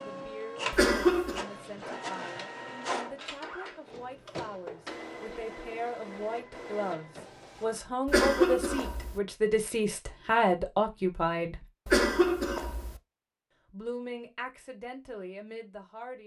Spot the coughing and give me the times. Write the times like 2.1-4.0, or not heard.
0.7-1.4, 8.1-9.2, 11.8-13.0.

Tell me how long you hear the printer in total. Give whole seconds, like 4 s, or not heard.
8 s.